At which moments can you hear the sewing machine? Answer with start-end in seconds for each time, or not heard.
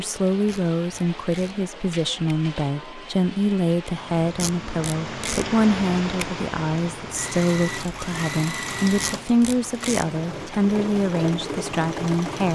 7.2-12.5.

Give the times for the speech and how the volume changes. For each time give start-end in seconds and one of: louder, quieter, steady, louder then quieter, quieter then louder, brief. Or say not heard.
0.0-12.5 steady.